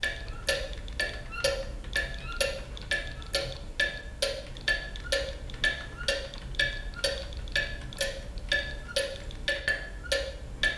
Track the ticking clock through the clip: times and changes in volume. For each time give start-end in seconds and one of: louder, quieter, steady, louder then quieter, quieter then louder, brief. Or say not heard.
0.0-10.7 steady.